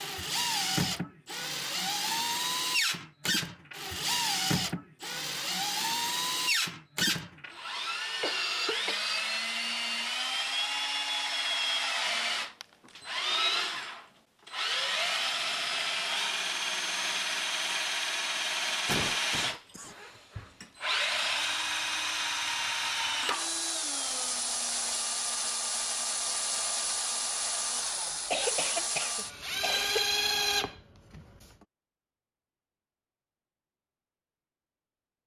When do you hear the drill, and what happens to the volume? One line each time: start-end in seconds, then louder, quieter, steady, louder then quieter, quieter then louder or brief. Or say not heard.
0.0-31.6 steady.